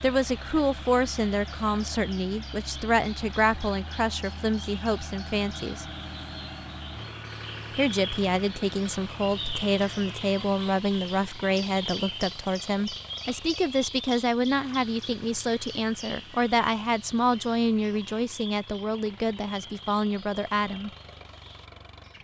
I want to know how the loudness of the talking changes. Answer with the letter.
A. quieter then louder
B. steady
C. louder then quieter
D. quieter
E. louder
B.